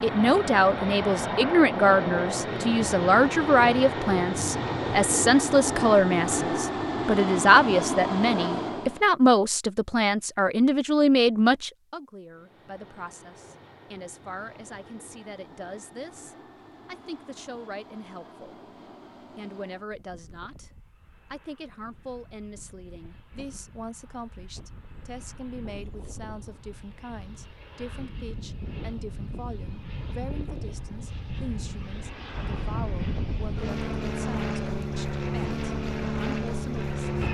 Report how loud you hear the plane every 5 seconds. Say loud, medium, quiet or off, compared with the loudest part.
loud, loud, quiet, quiet, quiet, quiet, medium, loud.